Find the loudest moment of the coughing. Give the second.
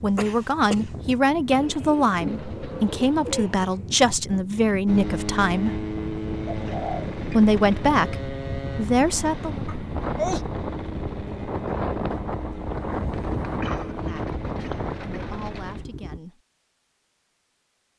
10 s.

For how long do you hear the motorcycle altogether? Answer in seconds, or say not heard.
11 s.